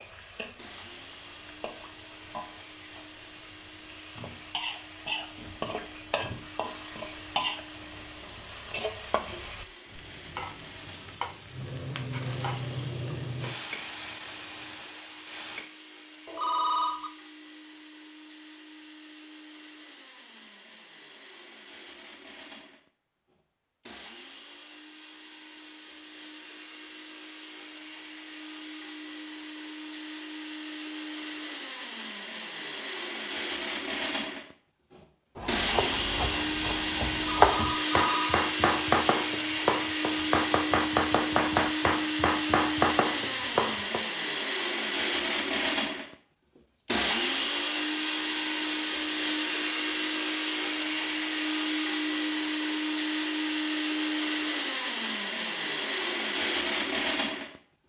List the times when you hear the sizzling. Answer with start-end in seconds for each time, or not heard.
0.0-15.7.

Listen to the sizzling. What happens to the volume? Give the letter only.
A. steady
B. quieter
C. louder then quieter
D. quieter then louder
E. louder
E.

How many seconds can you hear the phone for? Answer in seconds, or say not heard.
2 s.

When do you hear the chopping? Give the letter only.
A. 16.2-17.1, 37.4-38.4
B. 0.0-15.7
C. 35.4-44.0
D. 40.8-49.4
C.